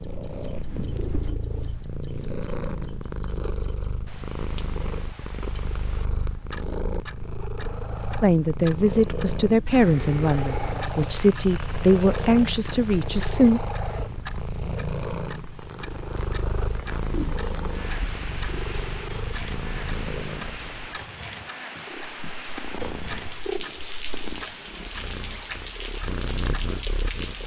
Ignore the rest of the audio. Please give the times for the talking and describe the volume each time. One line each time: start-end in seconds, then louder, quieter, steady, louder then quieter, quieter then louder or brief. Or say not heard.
8.2-13.6 steady.